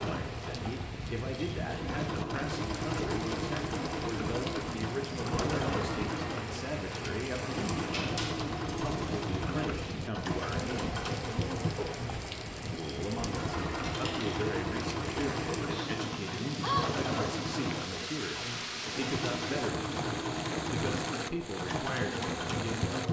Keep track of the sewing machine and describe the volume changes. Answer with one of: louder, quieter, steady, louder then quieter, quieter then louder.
steady.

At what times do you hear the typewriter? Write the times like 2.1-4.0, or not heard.
not heard.